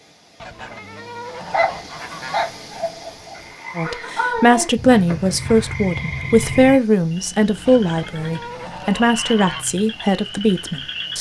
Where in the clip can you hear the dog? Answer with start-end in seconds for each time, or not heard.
1.5-3.5.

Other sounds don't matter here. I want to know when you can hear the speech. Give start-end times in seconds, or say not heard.
3.8-11.1.